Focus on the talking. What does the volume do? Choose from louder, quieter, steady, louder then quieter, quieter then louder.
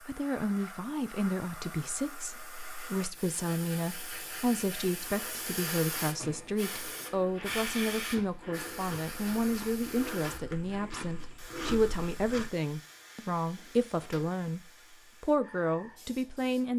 steady.